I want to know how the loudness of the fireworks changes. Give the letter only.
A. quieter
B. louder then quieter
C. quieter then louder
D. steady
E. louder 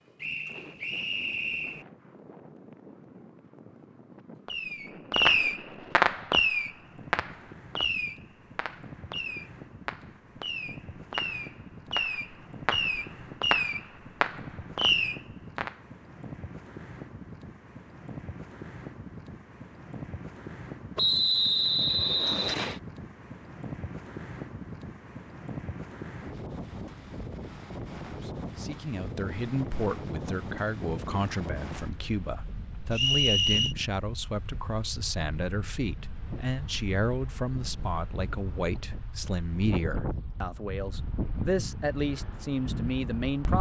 C.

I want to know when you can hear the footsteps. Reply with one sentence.
You can't hear the footsteps here.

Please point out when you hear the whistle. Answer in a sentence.
You can hear the whistle from 0.2 to 1.9 s, from 20.9 to 22.8 s and from 32.9 to 33.8 s.